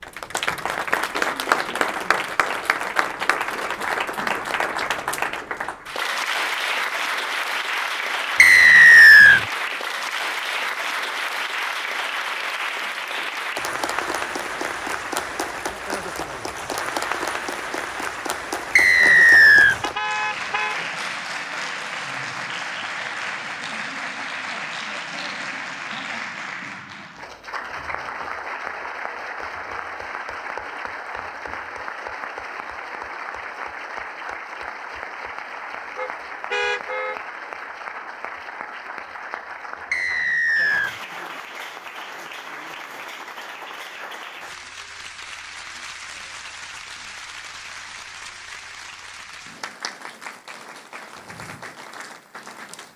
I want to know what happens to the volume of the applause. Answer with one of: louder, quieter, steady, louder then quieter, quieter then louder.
quieter.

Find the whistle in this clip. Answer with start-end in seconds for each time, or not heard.
8.3-9.4, 18.8-19.8, 39.9-41.0.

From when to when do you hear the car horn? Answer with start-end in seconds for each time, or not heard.
19.8-20.8, 36.0-37.2.